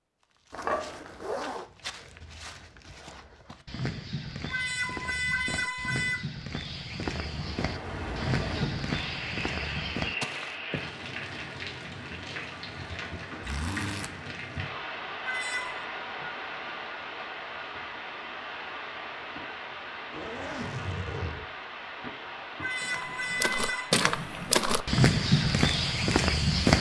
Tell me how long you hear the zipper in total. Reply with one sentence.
The zipper can be heard for 3 seconds in total.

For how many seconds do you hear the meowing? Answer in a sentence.
The meowing can be heard for 4 seconds in total.